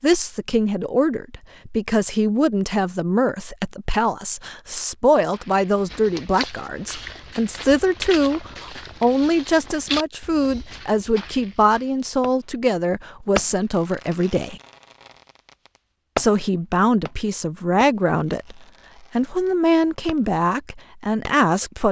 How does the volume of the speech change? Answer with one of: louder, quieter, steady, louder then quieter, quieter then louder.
steady.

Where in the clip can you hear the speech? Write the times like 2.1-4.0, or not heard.
0.0-14.6, 16.1-21.8.